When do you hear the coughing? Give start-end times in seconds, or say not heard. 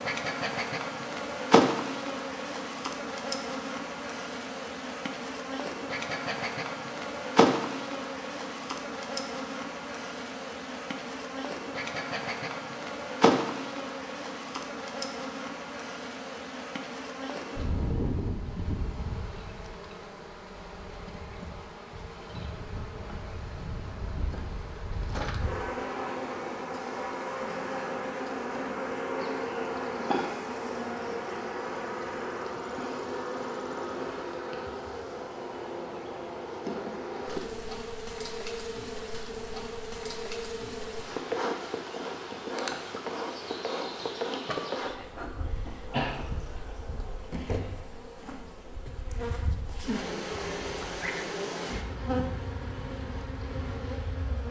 45.9-46.7.